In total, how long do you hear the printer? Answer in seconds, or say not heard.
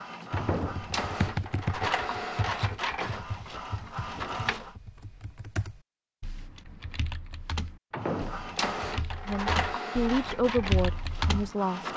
9 s.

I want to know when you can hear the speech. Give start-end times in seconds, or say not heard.
9.2-11.9.